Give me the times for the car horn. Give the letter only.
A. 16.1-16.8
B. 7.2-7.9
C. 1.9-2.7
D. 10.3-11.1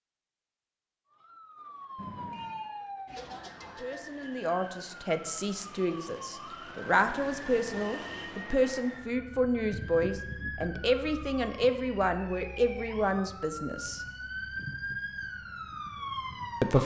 C.